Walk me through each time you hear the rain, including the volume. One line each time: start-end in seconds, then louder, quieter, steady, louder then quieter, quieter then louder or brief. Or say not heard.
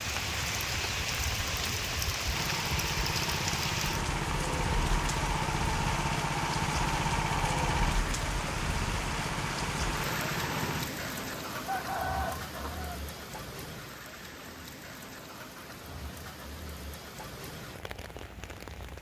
0.0-18.9 quieter.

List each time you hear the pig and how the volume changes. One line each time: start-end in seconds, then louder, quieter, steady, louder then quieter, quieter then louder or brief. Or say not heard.
not heard.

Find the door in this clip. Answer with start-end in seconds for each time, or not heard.
not heard.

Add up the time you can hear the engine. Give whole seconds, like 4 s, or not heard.
9 s.